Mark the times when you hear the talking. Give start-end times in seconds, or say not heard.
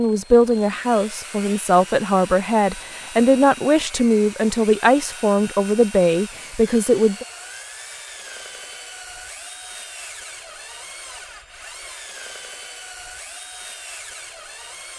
0.0-7.2.